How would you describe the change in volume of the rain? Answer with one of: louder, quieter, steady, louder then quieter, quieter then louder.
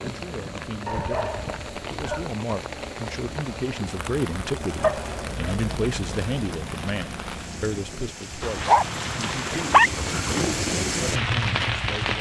louder.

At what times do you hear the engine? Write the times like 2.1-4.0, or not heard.
0.0-7.8.